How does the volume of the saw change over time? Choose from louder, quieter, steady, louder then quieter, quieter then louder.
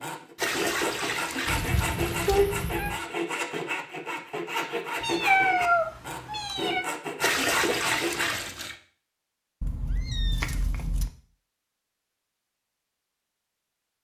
steady.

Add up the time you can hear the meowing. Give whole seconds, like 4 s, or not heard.
5 s.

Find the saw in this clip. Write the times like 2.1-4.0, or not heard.
0.0-8.3.